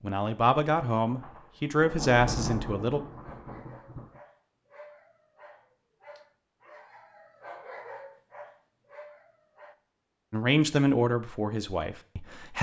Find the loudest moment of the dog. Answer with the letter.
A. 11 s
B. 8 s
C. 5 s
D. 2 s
B.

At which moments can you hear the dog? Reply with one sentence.
You can hear the dog from 3.0 to 9.8 s.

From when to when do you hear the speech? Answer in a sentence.
You can hear the speech from 0.0 to 3.0 s and from 10.3 to 12.5 s.